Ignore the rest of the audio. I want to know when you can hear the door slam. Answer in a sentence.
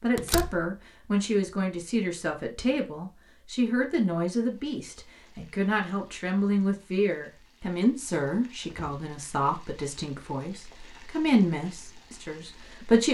The door slam can be heard from 0.1 to 0.7 s and from 8.6 to 9.0 s.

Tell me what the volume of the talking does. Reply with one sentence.
The loudness of the talking stays about the same.